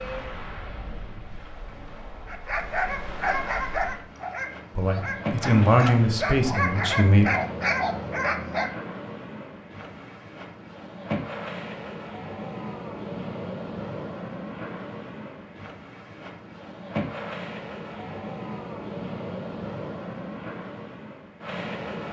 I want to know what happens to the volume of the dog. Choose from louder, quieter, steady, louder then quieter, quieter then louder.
quieter then louder.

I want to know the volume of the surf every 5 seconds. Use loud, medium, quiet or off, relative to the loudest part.
medium, loud, loud, loud, loud.